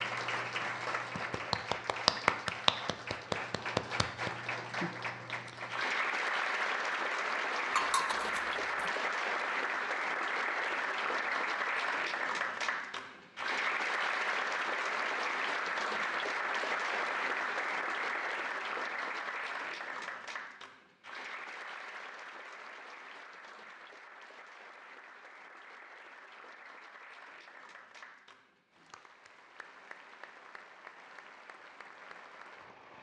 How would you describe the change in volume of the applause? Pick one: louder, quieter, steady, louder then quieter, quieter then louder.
quieter.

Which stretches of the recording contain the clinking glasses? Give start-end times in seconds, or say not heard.
7.8-8.9.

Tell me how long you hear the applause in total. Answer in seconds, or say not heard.
33 s.